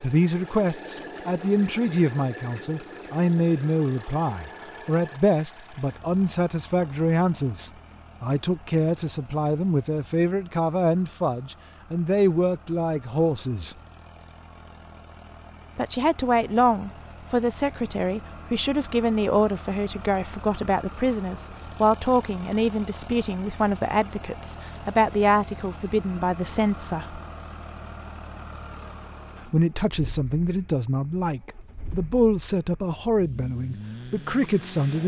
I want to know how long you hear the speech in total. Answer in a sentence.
You can hear the speech for 31 seconds altogether.